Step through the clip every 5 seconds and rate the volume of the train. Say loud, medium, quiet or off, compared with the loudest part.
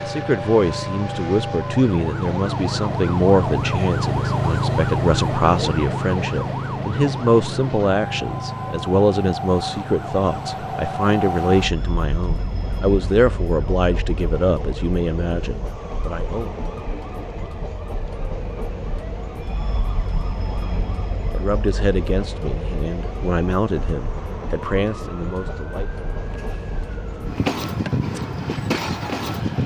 medium, medium, loud, medium, medium, loud.